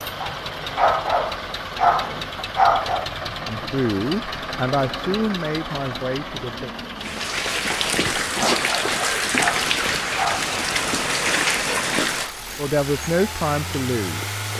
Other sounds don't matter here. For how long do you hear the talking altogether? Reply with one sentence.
You can hear the talking for 5 seconds altogether.